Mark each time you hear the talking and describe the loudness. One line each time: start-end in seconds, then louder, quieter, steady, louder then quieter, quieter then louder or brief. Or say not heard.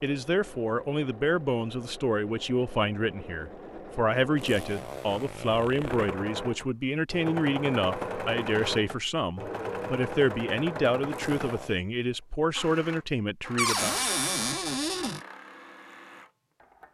0.0-14.0 steady.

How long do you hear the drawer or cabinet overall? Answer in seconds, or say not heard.
2 s.